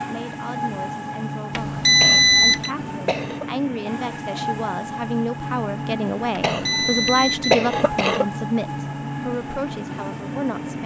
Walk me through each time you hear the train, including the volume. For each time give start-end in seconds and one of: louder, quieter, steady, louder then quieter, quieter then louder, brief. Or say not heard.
0.0-10.8 steady.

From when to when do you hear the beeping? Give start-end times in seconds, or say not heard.
1.5-2.7, 6.5-7.6.